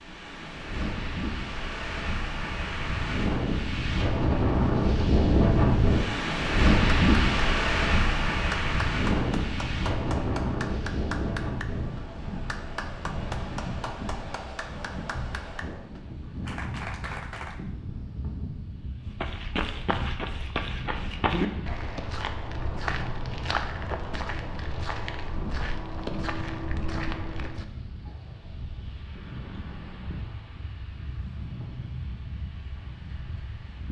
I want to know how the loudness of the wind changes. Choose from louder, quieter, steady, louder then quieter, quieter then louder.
quieter.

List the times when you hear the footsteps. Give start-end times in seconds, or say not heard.
19.1-27.6.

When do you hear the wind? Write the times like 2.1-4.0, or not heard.
0.0-33.8.